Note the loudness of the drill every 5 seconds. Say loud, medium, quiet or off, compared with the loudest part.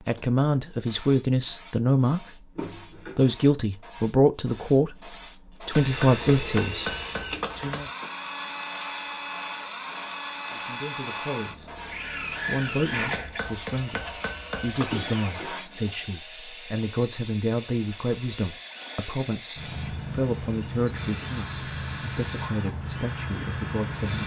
off, loud, loud, medium, medium.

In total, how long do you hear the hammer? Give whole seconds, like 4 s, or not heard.
4 s.